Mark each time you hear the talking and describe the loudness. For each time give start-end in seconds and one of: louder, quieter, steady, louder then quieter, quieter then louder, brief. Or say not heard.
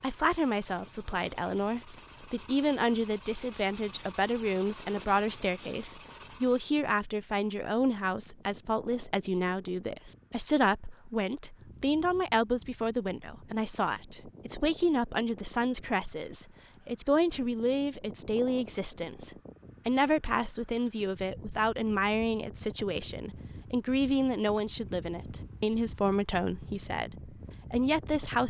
0.0-28.4 steady.